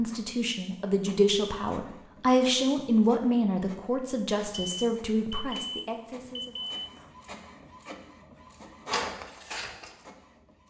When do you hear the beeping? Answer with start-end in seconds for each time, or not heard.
4.5-7.1.